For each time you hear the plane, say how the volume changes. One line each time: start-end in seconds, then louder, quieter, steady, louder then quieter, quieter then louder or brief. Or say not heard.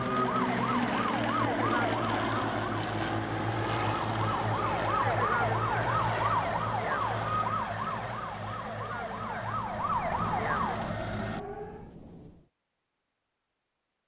0.0-11.4 quieter.